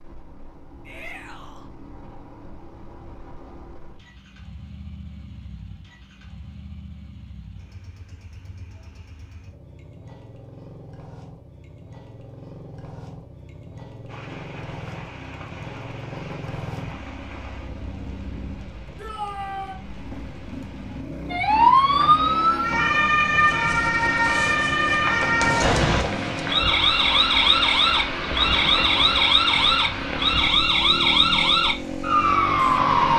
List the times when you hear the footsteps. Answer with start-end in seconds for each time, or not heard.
not heard.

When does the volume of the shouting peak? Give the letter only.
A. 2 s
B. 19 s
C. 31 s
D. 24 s
B.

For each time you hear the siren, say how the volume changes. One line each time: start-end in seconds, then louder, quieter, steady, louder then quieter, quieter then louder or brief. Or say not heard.
21.3-33.1 steady.